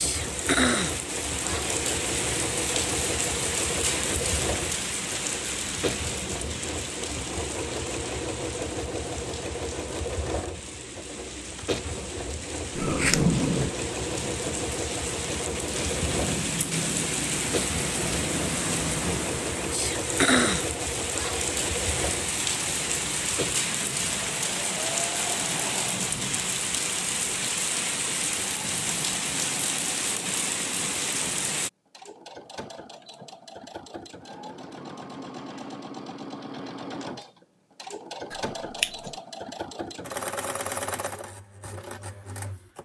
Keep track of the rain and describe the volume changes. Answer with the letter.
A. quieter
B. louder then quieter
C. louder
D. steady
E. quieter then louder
E.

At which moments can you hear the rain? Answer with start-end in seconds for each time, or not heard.
0.0-31.7.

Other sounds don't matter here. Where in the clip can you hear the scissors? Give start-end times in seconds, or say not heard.
12.8-13.8, 38.3-39.1.